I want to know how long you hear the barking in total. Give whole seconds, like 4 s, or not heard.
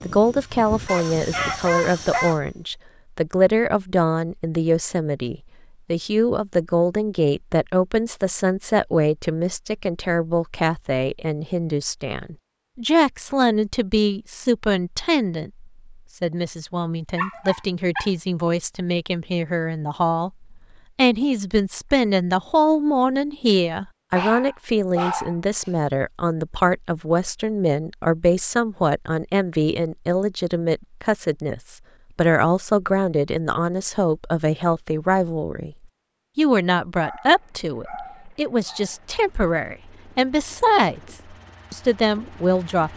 6 s.